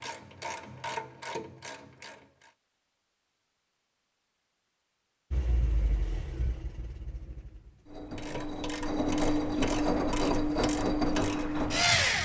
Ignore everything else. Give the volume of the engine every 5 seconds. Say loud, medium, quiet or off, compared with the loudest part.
off, medium, loud.